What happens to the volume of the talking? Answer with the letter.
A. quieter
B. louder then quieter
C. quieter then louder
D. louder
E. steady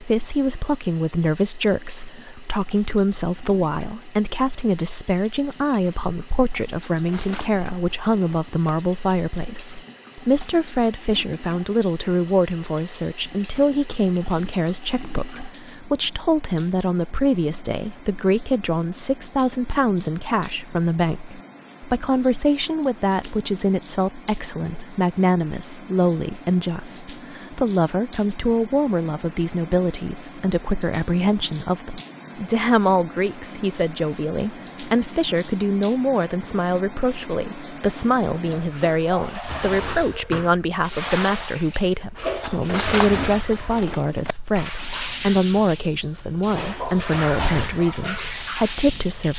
E.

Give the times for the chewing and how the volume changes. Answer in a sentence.
You can't hear the chewing here.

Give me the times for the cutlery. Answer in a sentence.
You can hear the cutlery from 6.9 to 8.6 s and from 42.3 to 44.4 s.